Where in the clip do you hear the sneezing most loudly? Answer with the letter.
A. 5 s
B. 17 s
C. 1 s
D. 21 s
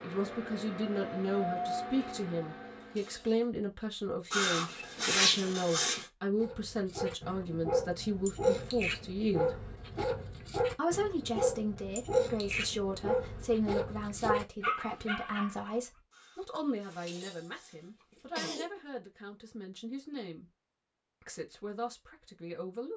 A.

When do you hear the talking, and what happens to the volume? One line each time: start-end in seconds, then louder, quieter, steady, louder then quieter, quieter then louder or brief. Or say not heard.
0.0-9.6 steady
10.8-20.4 quieter
21.2-22.9 brief.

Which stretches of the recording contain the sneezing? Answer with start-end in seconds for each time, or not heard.
4.3-6.0, 16.1-18.7.